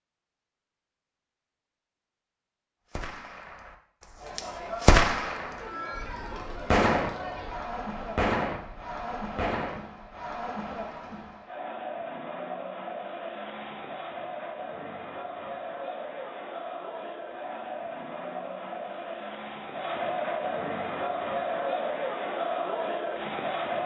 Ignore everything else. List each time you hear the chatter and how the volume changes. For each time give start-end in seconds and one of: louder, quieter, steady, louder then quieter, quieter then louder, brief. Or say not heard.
4.2-23.8 louder.